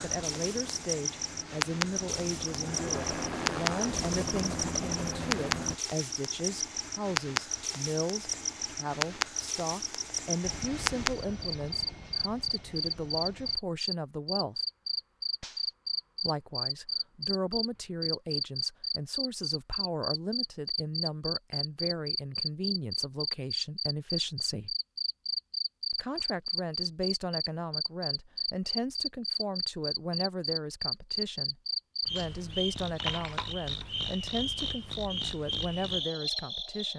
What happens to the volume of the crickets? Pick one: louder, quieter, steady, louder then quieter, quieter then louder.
steady.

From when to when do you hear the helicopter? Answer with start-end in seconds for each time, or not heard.
0.0-5.8, 10.4-13.6.